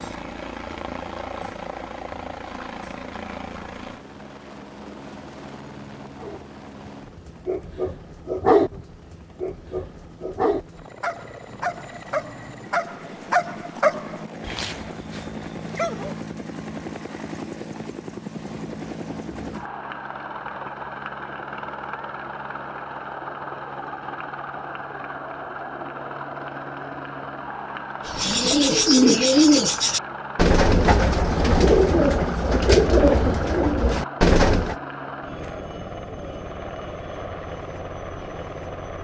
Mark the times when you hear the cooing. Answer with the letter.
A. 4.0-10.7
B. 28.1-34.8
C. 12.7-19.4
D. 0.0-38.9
B.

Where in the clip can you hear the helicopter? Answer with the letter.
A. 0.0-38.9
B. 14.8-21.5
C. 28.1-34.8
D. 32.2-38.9
A.